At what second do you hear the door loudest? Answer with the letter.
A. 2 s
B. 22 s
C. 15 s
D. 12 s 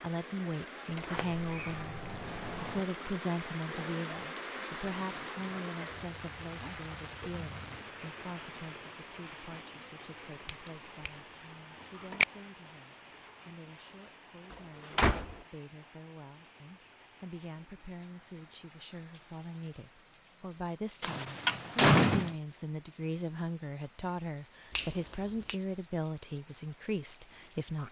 B.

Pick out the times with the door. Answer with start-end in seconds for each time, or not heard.
0.9-2.9, 14.5-15.3, 21.0-22.4.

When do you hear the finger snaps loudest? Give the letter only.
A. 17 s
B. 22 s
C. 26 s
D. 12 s
D.